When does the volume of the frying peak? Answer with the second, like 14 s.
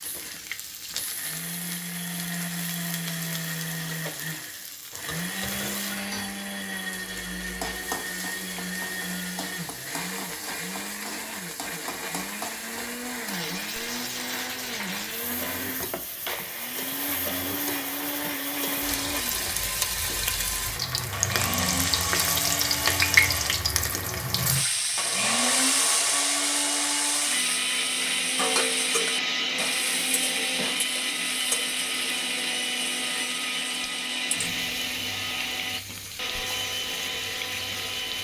23 s.